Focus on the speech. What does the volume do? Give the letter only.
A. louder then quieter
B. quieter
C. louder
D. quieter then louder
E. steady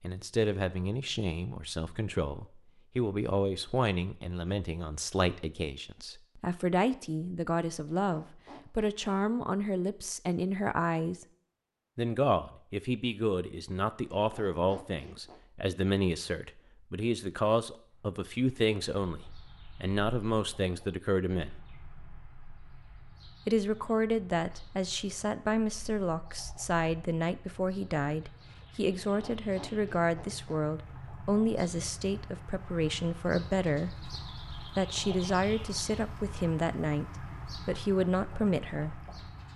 E.